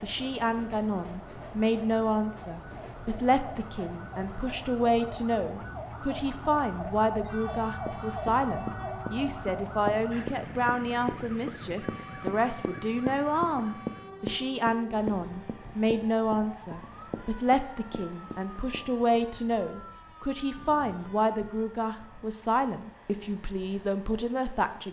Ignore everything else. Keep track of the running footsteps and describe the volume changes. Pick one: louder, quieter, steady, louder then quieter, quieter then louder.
quieter.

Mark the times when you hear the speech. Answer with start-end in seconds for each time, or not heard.
0.0-24.8.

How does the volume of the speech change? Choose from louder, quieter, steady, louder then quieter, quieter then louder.
steady.